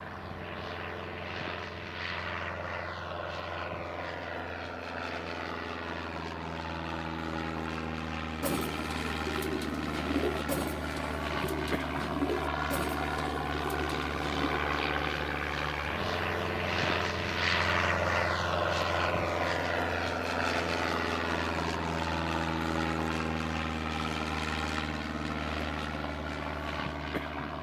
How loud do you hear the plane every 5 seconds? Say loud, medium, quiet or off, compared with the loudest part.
medium, medium, loud, loud, loud, medium.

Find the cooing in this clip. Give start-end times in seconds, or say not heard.
8.4-14.6.